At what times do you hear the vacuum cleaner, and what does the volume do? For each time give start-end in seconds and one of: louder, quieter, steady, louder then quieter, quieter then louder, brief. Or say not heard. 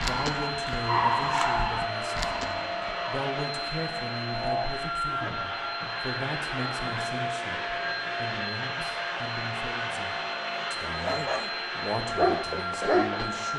0.0-13.5 steady.